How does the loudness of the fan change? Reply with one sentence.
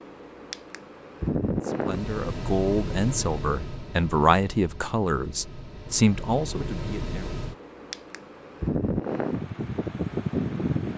The volume of the fan goes down, then up.